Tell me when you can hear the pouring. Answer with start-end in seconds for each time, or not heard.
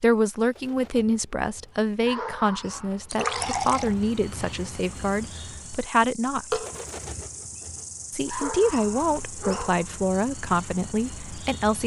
3.1-4.0, 6.5-7.2.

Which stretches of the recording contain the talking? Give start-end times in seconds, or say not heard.
0.0-6.7, 8.1-11.8.